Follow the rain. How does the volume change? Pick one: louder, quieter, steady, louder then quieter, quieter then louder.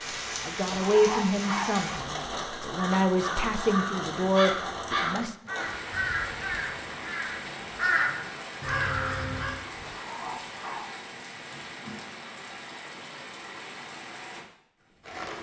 quieter.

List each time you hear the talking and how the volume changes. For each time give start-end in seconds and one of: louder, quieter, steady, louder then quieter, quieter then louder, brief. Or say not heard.
0.4-5.3 quieter then louder.